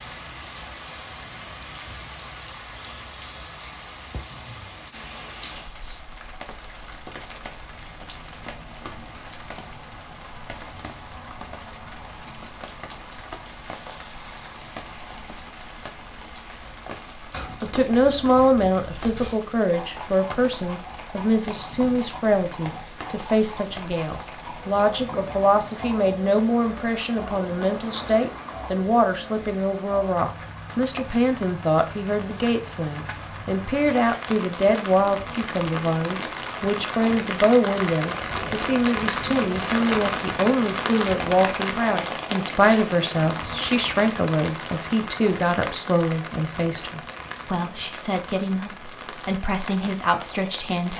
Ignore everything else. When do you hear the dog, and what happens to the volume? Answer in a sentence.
The dog can't be heard in this clip.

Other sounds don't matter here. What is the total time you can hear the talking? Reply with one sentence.
The talking can be heard for 33 seconds in total.